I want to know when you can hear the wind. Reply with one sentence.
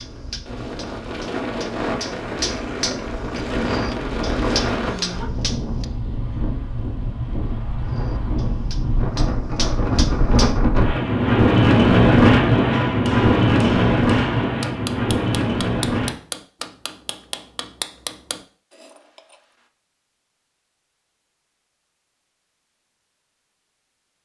The wind can be heard from 0.0 to 16.1 s.